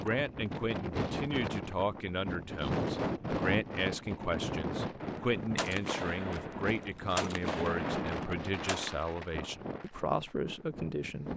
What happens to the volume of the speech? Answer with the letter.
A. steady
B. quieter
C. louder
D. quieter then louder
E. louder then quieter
A.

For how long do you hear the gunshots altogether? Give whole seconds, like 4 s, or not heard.
4 s.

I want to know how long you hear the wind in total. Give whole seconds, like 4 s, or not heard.
11 s.